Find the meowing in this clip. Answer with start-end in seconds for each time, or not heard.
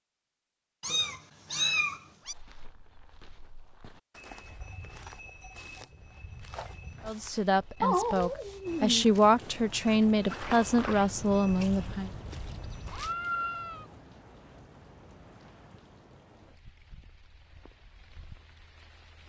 0.8-2.4, 7.8-9.1, 12.9-13.8.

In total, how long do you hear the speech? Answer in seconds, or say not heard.
5 s.